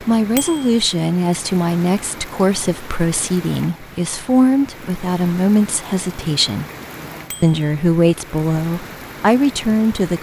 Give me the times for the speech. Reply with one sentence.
You can hear the speech from 0.0 to 6.7 s and from 7.4 to 10.1 s.